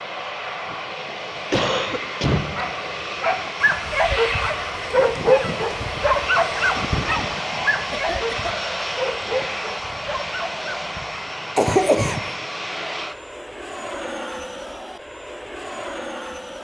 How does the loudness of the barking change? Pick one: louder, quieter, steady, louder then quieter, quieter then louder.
quieter.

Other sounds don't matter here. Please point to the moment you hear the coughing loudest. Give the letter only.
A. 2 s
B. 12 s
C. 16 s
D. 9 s
B.